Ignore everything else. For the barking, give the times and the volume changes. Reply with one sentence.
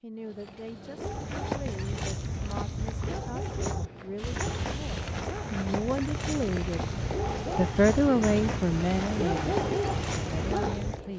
You can hear the barking from 0.1 to 11.1 s, getting louder.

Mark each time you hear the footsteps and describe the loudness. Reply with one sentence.
The footsteps can be heard from 0.9 to 11.0 s, at a steady volume.